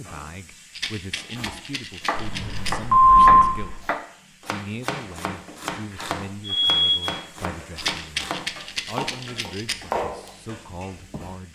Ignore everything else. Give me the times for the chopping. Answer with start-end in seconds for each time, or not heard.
1.3-11.3.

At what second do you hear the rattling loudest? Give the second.
8 s.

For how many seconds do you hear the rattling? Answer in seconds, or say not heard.
4 s.